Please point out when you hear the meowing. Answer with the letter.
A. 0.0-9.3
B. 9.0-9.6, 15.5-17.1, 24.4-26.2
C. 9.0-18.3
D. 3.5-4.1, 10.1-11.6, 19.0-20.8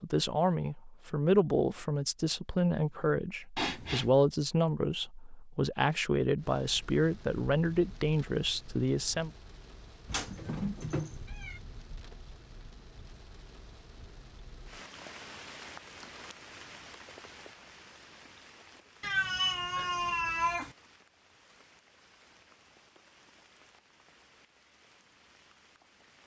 D.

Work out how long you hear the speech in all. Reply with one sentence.
You can hear the speech for 9 seconds altogether.